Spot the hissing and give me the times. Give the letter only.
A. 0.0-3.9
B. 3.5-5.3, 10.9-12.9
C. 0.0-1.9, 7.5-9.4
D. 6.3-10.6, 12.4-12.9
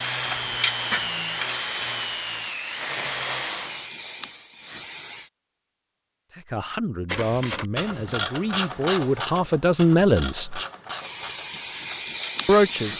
B.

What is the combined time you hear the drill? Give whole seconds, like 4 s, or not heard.
4 s.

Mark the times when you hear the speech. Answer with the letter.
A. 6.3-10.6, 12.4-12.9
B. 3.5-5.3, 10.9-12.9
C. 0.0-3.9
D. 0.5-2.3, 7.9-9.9
A.